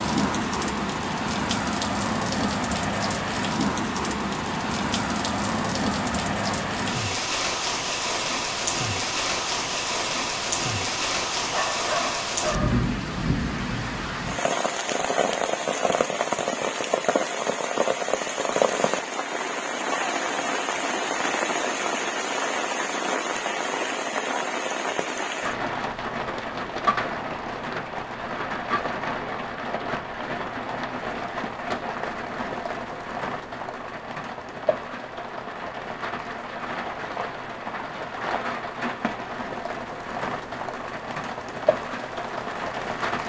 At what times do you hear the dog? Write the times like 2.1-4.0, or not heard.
11.5-12.8.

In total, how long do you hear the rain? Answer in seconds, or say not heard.
43 s.